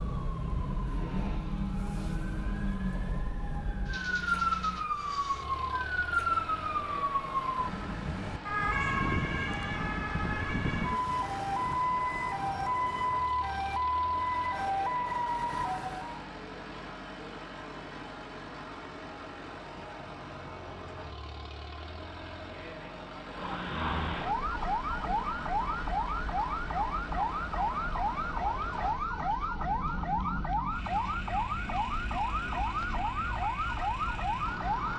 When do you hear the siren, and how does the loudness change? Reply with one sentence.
You can hear the siren from 0.0 to 16.2 s, getting louder; and from 23.3 to 34.9 s, at a steady volume.